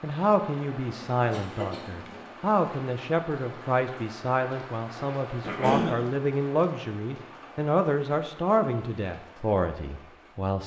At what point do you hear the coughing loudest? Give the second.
6 s.